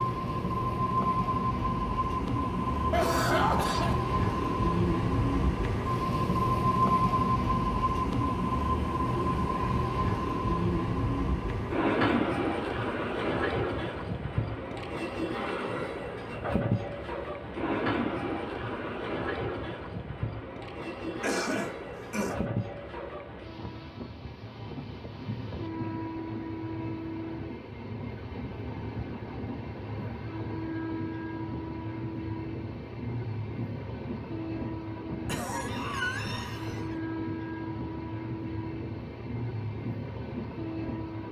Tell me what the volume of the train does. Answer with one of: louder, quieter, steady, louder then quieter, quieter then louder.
quieter.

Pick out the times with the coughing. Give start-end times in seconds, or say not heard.
2.9-4.0, 21.2-22.4, 35.2-37.0.